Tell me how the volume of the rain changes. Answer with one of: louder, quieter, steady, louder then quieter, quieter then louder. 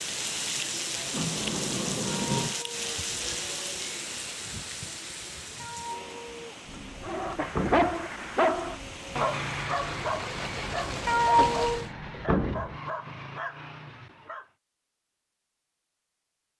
quieter then louder.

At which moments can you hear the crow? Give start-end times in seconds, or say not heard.
not heard.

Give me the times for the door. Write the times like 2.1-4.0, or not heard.
1.1-2.5, 6.7-8.1, 11.4-12.8.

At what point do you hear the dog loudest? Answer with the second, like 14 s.
8 s.